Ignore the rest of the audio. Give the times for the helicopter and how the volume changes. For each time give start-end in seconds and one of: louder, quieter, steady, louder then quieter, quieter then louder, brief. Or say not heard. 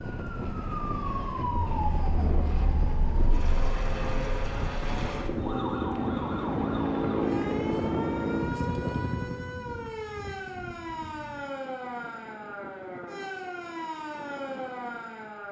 0.0-9.6 louder.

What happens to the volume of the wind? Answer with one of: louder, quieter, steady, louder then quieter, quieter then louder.
quieter.